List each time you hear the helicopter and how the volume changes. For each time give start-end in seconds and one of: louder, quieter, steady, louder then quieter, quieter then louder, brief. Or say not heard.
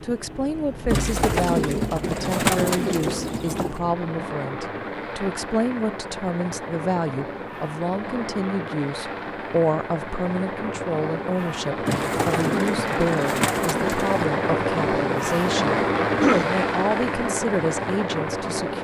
0.0-18.7 louder.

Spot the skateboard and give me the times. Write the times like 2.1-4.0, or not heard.
not heard.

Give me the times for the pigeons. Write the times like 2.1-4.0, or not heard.
0.9-3.8, 11.8-14.2.